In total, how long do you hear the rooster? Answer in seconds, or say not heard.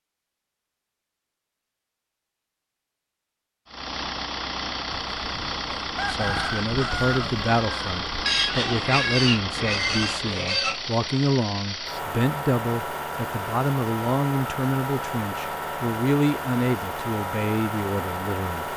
3 s.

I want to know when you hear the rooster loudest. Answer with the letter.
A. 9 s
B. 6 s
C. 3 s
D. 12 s
B.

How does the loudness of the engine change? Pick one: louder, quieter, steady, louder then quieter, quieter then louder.
steady.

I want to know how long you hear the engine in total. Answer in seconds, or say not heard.
15 s.